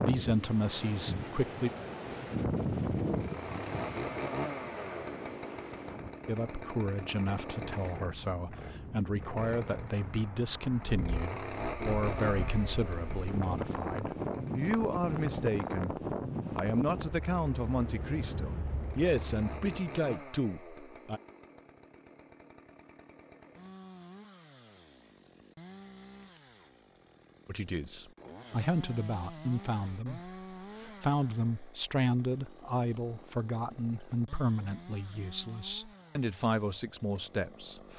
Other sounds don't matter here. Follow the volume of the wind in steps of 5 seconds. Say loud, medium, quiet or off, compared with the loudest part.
loud, medium, loud, loud, off, off, off, off.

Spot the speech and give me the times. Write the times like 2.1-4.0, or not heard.
0.0-1.7, 6.2-15.9, 16.6-21.2, 27.4-37.8.